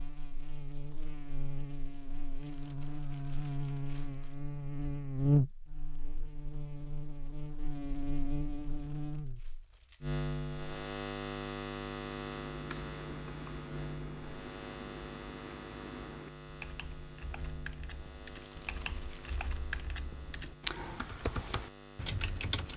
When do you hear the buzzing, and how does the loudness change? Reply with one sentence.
The buzzing can be heard from 0.0 to 22.7 s, getting louder then quieter.